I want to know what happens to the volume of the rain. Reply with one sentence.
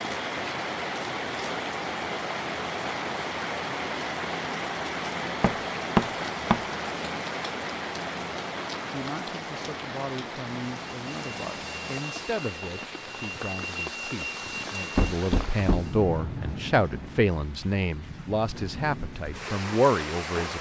The volume of the rain goes down.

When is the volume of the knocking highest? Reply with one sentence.
The volume of the knocking peaks at 6 seconds.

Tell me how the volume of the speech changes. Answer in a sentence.
The loudness of the speech goes up.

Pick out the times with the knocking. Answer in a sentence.
The knocking can be heard from 5.4 to 6.6 s and from 14.9 to 15.9 s.